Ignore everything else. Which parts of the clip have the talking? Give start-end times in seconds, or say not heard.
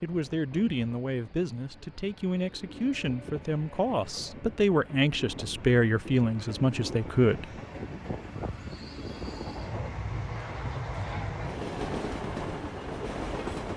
0.0-7.5.